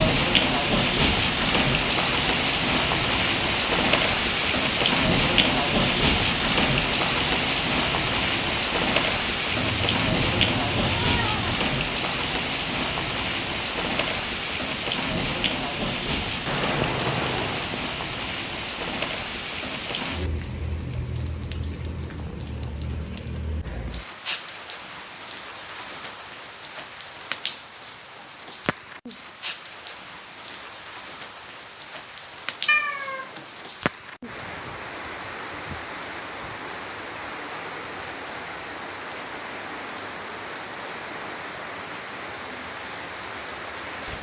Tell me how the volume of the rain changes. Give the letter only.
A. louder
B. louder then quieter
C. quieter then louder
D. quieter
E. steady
D.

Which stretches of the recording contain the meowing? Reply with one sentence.
You can hear the meowing from 9.6 to 11.6 s, from 16.4 to 17.8 s and from 32.6 to 33.7 s.